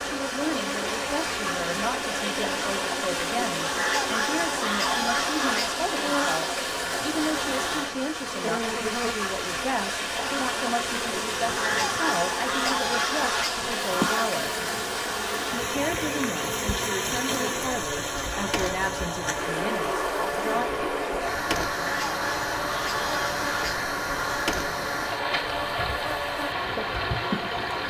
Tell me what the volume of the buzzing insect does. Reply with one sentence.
The volume of the buzzing insect stays about the same.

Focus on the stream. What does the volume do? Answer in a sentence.
The loudness of the stream stays about the same.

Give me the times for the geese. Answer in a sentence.
You can hear the geese from 3.6 to 6.4 s, from 11.4 to 14.3 s and from 21.8 to 24.6 s.